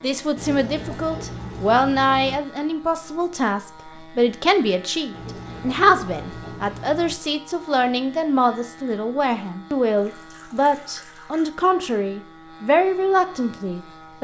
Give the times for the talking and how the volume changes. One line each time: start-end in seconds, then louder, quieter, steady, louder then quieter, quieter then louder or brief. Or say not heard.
0.0-14.1 steady.